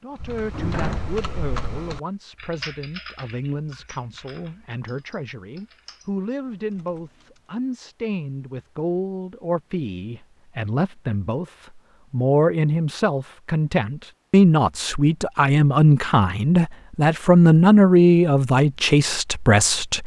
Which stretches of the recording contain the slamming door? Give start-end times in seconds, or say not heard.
0.1-1.8.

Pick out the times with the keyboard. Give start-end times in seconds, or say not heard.
0.1-7.5.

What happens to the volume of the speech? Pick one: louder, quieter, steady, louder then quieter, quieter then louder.
louder.